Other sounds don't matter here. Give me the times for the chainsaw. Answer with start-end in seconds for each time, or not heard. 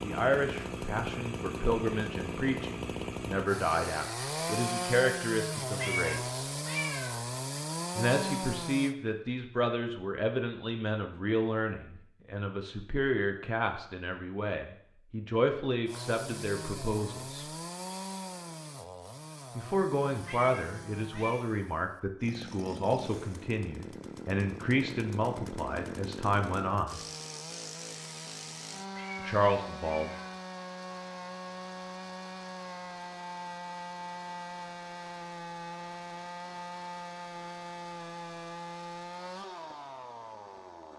0.0-8.9, 15.8-40.9.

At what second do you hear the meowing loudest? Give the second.
6 s.